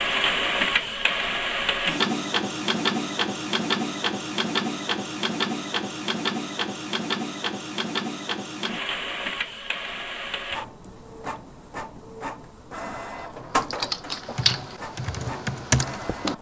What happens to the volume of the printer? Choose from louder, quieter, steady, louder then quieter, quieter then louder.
quieter.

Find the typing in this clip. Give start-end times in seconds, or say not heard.
13.3-16.3.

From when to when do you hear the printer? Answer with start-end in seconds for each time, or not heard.
0.0-16.3.